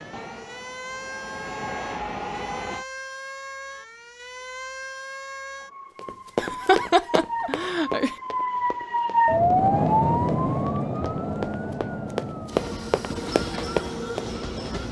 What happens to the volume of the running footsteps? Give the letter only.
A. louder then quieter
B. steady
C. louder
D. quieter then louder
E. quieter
D.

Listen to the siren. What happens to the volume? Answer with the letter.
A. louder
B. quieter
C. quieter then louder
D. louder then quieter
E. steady
D.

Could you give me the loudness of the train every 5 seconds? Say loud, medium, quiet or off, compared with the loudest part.
loud, off, loud.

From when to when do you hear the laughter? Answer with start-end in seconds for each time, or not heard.
6.3-8.2.